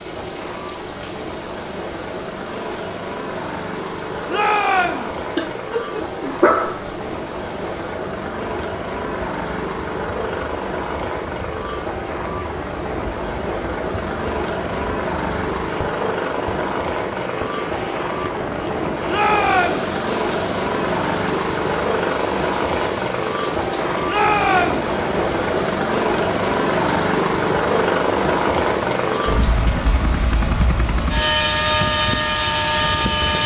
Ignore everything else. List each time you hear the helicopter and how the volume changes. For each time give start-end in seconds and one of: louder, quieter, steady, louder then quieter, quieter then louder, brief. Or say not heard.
0.0-33.4 louder.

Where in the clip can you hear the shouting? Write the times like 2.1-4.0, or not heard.
4.2-5.1, 19.1-19.9, 24.1-24.9.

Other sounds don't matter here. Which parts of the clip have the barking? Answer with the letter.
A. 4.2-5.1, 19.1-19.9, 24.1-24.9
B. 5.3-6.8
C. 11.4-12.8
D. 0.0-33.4
B.